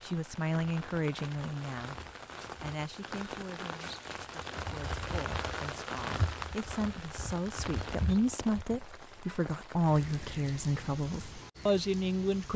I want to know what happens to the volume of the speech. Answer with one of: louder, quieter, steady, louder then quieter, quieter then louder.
quieter then louder.